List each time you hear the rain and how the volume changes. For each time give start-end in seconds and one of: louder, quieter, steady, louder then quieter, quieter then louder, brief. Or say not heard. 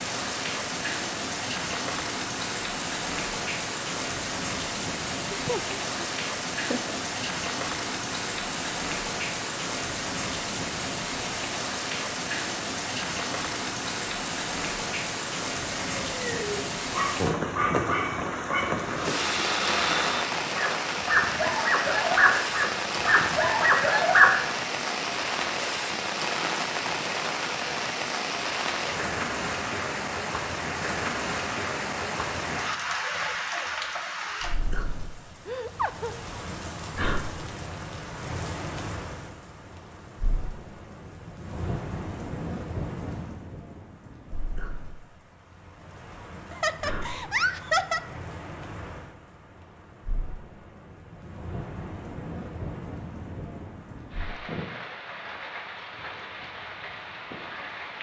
0.0-57.9 quieter.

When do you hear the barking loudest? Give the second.
24 s.